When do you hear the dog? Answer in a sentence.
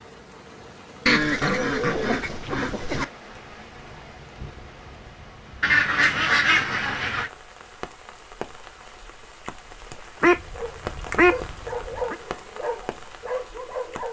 You can hear the dog from 10.5 to 14.0 s.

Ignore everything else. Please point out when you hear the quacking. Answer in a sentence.
You can hear the quacking from 1.1 to 3.0 s, from 5.6 to 7.3 s and from 10.2 to 12.2 s.